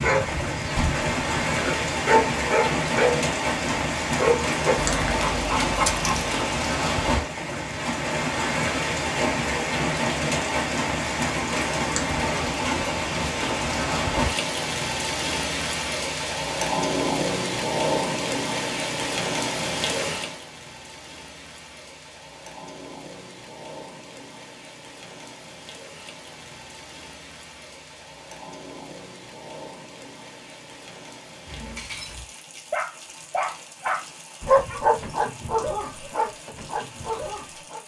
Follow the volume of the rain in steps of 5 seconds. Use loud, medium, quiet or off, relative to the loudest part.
loud, loud, loud, loud, quiet, quiet, quiet, quiet.